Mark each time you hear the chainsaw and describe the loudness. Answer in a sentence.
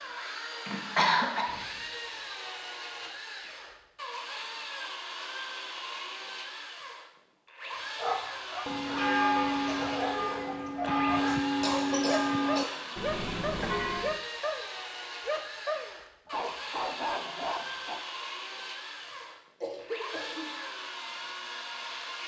You can hear the chainsaw from 0.0 to 22.2 s, at a steady volume.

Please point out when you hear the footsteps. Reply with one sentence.
The footsteps can't be heard in this clip.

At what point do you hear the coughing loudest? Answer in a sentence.
The loudest moment of the coughing is at 1 second.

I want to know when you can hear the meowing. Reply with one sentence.
You can't hear the meowing here.